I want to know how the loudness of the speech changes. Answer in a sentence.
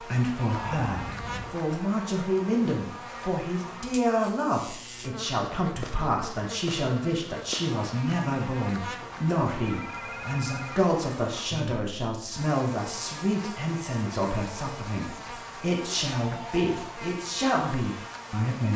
The loudness of the speech stays about the same.